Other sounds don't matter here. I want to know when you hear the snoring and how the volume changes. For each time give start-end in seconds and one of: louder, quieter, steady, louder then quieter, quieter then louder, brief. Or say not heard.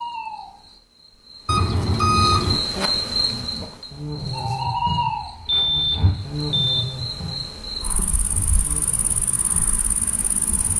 3.1-10.7 quieter.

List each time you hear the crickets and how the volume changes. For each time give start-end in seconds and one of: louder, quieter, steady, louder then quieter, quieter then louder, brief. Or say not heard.
0.0-10.7 louder then quieter.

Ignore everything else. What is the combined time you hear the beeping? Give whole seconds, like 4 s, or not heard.
3 s.